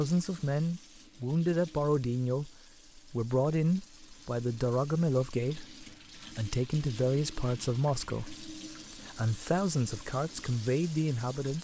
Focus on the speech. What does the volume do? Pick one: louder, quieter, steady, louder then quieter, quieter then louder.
steady.